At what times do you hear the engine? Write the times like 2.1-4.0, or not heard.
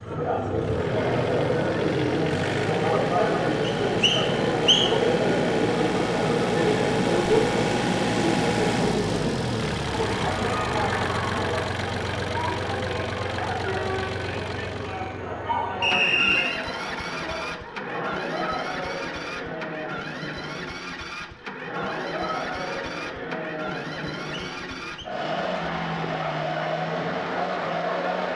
0.0-28.3.